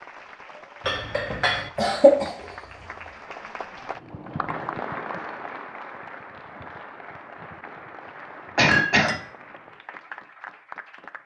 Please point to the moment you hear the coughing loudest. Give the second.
2 s.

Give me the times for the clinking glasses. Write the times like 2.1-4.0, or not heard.
0.8-1.7, 8.7-9.2.